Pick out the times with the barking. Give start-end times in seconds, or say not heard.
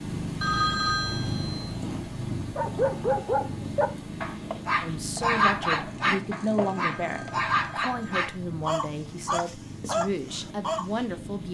2.5-10.8.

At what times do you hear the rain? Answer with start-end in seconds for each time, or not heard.
not heard.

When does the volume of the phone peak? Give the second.
1 s.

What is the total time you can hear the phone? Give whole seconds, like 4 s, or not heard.
3 s.